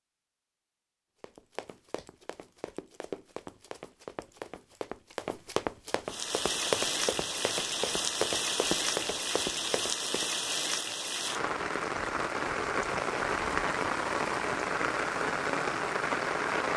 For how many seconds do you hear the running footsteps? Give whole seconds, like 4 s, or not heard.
9 s.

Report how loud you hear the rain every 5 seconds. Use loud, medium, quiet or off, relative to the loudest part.
off, loud, loud, loud.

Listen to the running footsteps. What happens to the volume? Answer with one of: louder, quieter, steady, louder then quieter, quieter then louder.
louder.